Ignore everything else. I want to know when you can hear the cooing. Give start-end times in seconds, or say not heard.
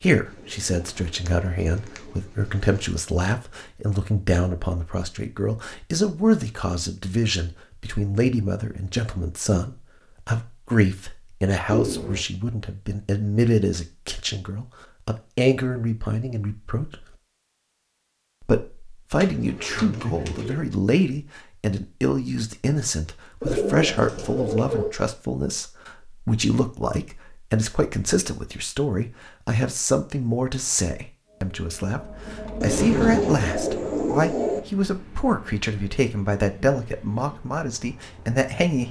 0.2-2.9, 11.7-12.2, 19.1-20.7, 23.4-24.9, 32.6-34.6.